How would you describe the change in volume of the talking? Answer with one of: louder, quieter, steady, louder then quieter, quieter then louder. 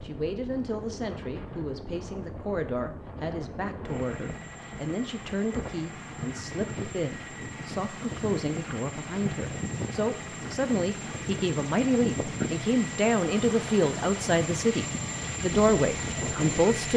louder.